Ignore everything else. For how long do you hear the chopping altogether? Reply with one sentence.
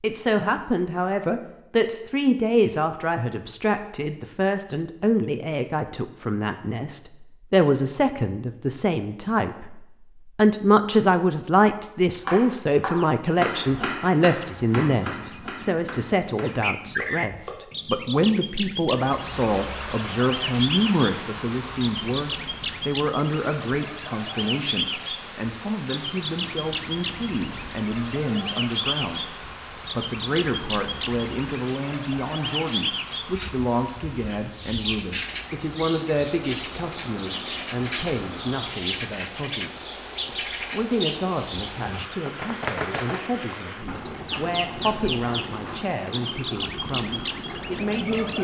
The chopping can be heard for 5 seconds in total.